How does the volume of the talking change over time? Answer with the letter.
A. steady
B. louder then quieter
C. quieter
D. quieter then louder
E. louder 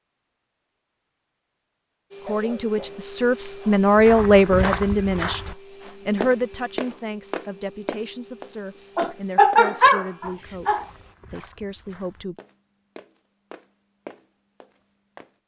C.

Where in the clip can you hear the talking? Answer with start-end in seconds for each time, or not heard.
2.2-12.3.